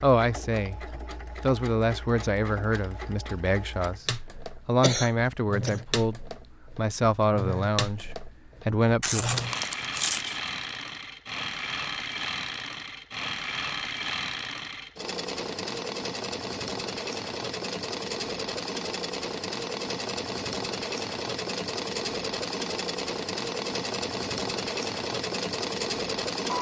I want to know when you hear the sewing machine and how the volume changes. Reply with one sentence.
You can hear the sewing machine from 0.0 to 26.5 s, getting louder.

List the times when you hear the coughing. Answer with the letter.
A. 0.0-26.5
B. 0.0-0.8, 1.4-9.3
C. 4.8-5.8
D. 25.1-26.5
C.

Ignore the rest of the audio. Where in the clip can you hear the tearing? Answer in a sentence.
The tearing can be heard from 9.0 to 10.5 s.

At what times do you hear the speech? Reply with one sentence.
You can hear the speech from 0.0 to 0.8 s and from 1.4 to 9.3 s.